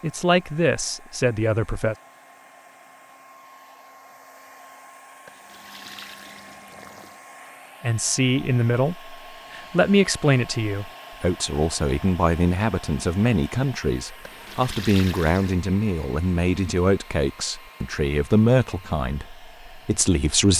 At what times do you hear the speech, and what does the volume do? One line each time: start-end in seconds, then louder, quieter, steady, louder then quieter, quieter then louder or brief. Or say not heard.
0.0-1.9 brief
7.8-20.5 steady.